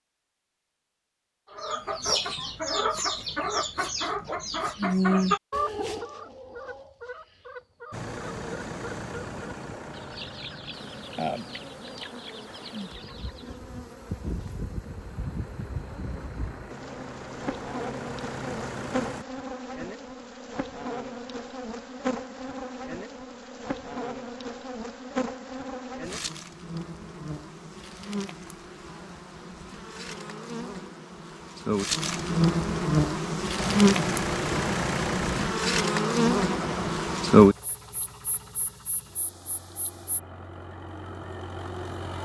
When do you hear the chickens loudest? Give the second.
5 s.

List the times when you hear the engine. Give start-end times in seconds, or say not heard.
7.9-19.2, 33.5-42.2.